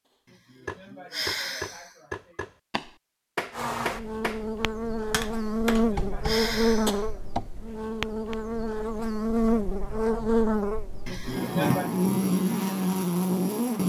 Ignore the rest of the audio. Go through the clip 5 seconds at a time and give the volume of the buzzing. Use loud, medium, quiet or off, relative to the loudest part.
medium, loud, loud.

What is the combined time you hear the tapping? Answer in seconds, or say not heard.
8 s.